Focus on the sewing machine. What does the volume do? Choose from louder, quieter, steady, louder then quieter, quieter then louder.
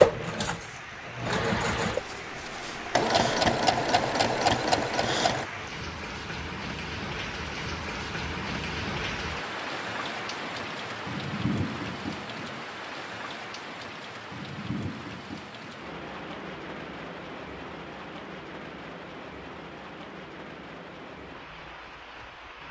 louder.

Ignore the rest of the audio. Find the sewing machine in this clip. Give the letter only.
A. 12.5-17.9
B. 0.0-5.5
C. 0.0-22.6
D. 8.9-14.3
B.